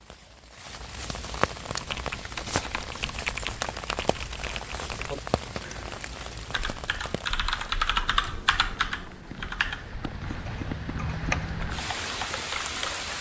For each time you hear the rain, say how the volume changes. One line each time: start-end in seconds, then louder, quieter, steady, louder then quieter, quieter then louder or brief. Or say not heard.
0.0-13.1 quieter then louder.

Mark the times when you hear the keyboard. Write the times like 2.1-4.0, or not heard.
1.6-13.1.